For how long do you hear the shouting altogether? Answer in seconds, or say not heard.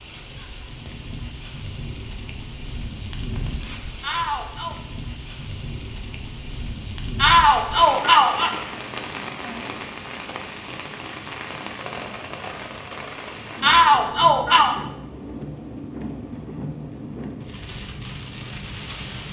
3 s.